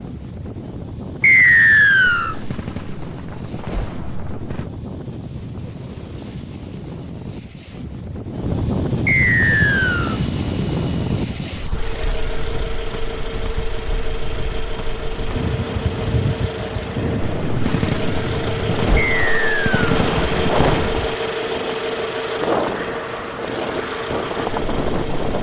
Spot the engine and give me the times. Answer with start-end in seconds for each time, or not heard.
9.3-25.3.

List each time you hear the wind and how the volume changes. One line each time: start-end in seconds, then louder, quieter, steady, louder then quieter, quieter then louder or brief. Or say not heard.
0.0-25.3 louder.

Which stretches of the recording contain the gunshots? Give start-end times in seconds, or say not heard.
2.3-4.7, 17.4-21.1.